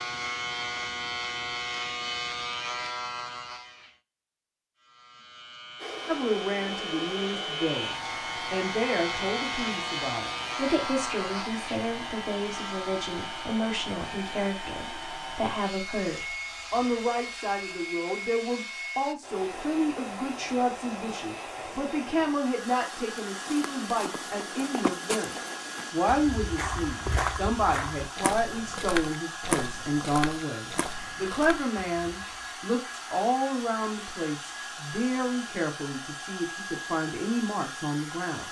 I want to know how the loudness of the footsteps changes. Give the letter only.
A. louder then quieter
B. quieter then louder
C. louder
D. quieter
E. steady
A.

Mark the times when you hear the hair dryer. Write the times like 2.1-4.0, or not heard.
5.8-38.4.